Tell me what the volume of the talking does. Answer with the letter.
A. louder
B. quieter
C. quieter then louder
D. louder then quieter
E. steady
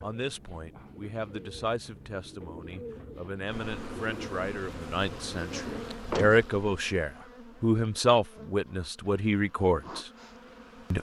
A.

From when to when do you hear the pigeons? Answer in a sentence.
You can hear the pigeons from 0.0 to 6.0 s.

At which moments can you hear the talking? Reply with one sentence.
The talking can be heard from 0.0 to 10.1 s.